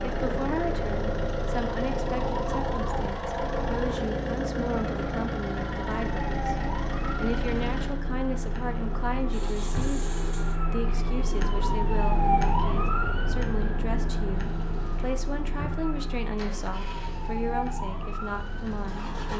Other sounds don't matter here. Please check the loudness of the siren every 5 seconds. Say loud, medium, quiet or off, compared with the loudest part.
medium, medium, loud, medium.